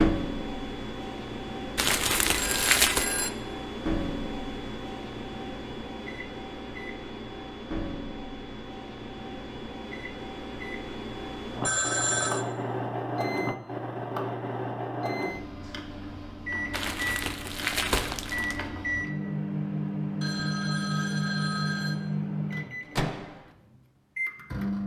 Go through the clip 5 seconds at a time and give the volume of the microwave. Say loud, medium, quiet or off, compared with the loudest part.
loud, medium, loud, loud, loud.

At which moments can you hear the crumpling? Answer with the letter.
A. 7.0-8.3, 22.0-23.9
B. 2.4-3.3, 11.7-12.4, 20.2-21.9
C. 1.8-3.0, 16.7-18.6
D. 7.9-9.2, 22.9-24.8
C.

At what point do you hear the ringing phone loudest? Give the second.
12 s.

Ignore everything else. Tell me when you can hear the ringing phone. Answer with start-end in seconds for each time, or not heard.
2.4-3.3, 11.7-12.4, 20.2-21.9.